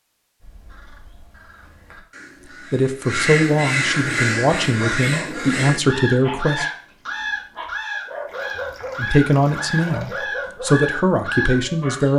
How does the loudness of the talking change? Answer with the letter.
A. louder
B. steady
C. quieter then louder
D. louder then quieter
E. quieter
B.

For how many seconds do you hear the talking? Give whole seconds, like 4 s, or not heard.
7 s.